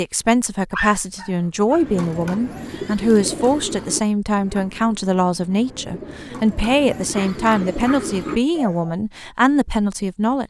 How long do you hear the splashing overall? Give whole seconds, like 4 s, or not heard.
not heard.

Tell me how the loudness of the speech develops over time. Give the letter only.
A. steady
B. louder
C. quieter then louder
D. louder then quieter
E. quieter
A.